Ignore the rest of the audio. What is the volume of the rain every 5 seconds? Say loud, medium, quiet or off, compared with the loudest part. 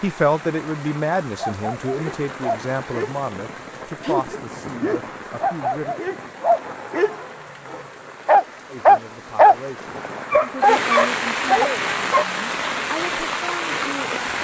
medium, quiet, loud.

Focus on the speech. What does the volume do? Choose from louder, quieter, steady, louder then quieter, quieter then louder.
quieter.